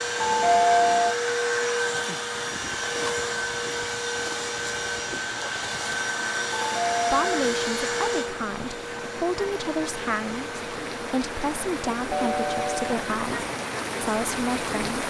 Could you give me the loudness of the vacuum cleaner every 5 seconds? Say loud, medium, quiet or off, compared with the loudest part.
loud, loud, medium.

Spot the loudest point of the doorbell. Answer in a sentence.
The volume of the doorbell peaks at 1 second.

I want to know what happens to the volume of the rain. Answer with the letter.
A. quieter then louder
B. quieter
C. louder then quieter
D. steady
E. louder
E.